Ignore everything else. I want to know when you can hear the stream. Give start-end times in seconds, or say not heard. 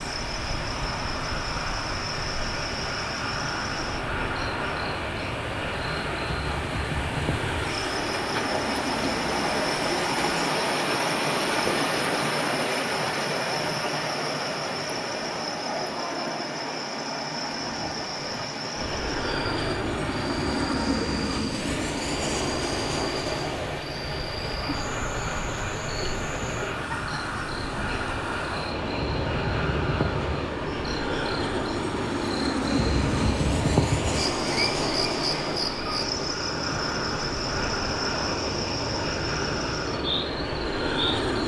0.0-41.4.